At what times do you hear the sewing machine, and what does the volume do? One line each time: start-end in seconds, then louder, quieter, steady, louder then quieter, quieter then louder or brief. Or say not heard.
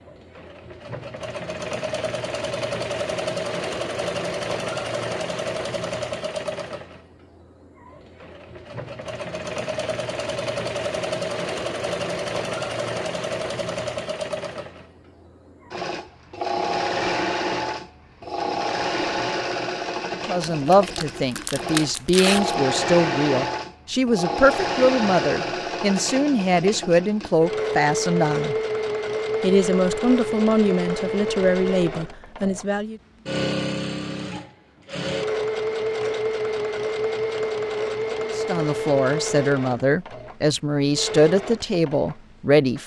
0.0-42.8 steady.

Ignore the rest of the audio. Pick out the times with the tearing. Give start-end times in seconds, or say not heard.
20.4-22.6.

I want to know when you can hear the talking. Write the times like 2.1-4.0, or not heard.
20.2-28.6, 29.4-33.0, 38.4-42.8.